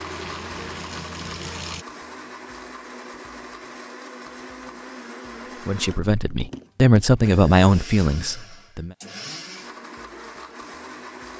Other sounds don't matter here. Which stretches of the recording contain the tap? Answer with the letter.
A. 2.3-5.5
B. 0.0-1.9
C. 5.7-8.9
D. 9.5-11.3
B.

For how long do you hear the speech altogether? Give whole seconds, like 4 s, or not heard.
3 s.